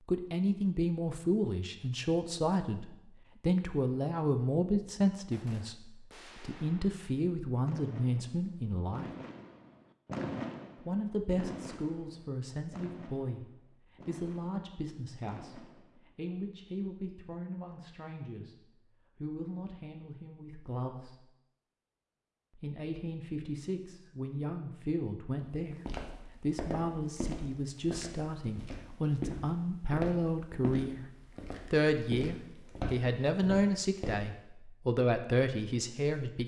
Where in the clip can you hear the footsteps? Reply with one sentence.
The footsteps can be heard from 25.4 to 34.2 s.